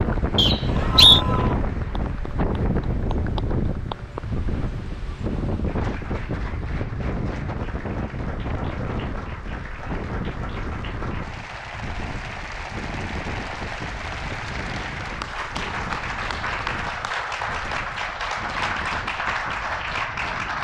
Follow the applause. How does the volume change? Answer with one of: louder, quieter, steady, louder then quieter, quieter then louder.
louder.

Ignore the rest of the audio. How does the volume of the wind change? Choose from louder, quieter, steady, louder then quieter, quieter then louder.
quieter.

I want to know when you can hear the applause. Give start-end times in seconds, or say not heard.
0.0-20.5.